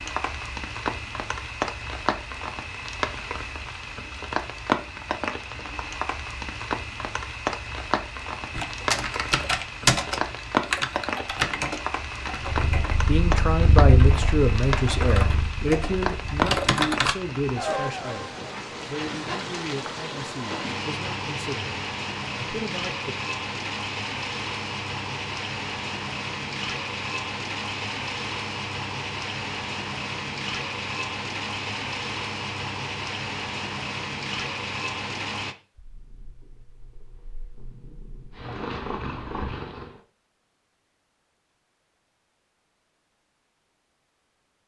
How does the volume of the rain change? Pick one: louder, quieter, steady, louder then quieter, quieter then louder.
steady.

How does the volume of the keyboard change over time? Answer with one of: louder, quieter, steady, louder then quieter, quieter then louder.
quieter then louder.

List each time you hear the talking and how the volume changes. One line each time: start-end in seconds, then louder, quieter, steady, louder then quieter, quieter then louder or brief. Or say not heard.
13.1-23.1 quieter.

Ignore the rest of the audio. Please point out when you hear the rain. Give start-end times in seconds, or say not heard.
0.0-35.5.